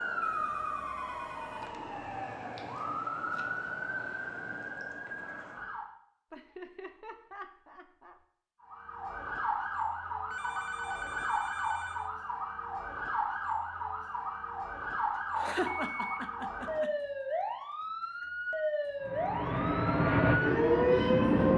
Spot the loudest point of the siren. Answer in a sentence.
The loudest moment of the siren is at 21 seconds.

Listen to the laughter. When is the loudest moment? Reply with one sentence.
The loudest moment of the laughter is at 16 seconds.